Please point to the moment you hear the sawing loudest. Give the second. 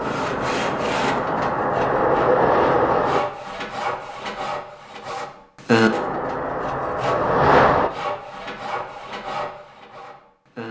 6 s.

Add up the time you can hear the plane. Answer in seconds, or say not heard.
5 s.